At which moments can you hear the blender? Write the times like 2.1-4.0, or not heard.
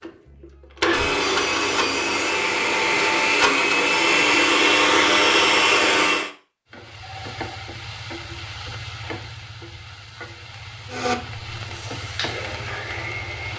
0.0-6.3, 10.9-13.5.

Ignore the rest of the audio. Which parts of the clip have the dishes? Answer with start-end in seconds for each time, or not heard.
not heard.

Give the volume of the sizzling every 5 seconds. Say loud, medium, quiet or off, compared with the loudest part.
off, loud, loud.